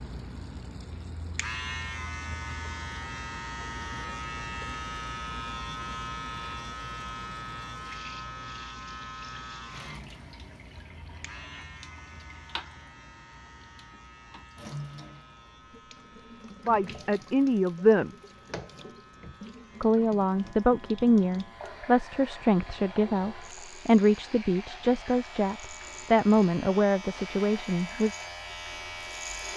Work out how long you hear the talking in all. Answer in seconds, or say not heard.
10 s.